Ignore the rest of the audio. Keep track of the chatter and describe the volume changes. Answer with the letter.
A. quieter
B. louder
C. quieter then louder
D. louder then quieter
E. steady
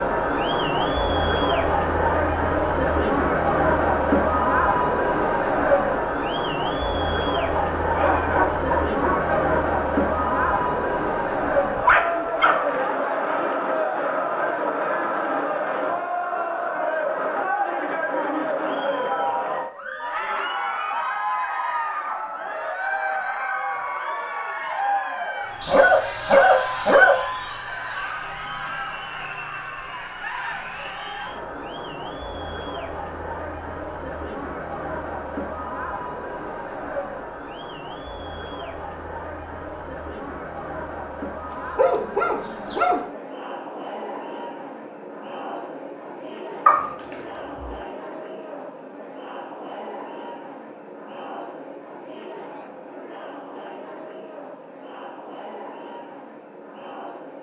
A.